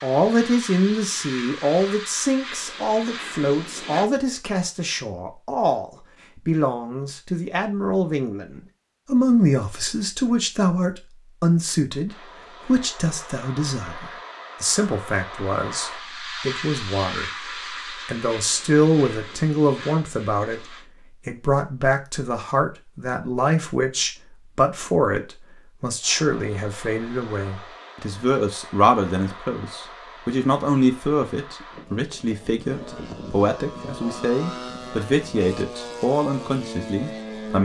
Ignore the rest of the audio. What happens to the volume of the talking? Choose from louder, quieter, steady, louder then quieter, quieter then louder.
steady.